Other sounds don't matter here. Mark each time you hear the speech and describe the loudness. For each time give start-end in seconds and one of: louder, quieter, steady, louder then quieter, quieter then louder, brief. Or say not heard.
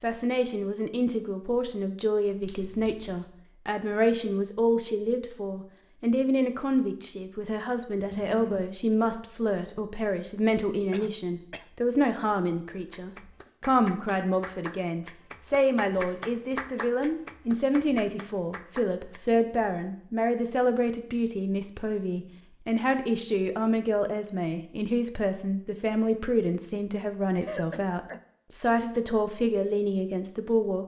0.0-30.8 steady.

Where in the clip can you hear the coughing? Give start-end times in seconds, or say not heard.
8.0-8.7, 10.9-11.7, 27.4-28.2.